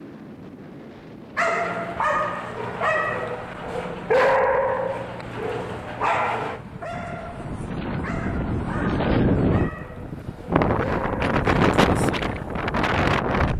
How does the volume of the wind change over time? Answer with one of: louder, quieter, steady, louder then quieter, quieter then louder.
louder.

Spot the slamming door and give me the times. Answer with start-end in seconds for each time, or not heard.
not heard.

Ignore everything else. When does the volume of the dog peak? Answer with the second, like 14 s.
4 s.